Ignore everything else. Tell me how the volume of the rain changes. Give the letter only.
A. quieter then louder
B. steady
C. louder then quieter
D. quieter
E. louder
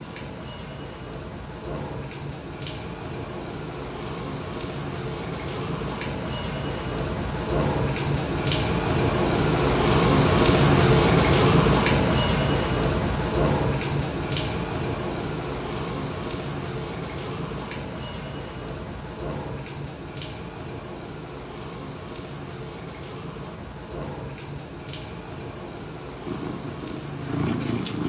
C.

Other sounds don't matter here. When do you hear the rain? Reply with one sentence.
You can hear the rain from 0.0 to 28.0 s.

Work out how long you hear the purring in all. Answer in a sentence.
You can hear the purring for 2 seconds altogether.